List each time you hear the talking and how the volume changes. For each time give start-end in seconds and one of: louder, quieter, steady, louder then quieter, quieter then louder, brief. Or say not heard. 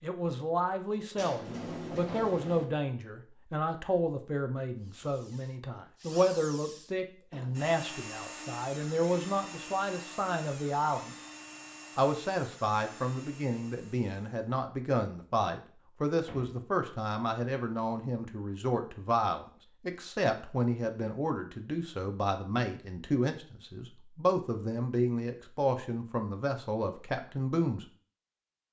0.0-11.2 steady
11.9-27.9 steady.